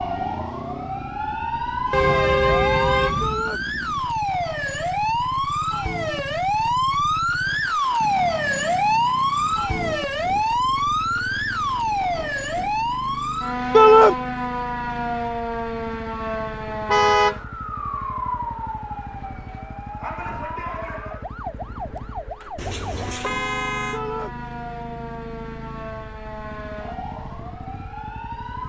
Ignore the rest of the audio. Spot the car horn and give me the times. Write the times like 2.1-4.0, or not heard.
1.9-3.5, 16.9-17.4, 22.6-24.0.